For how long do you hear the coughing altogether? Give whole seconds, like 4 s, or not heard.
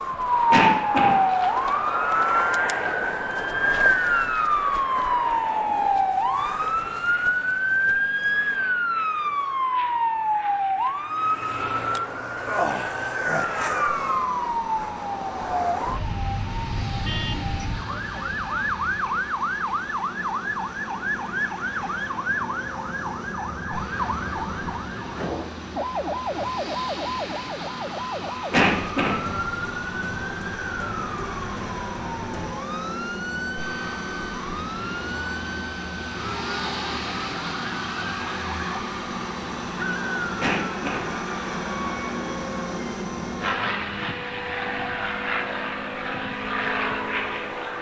2 s.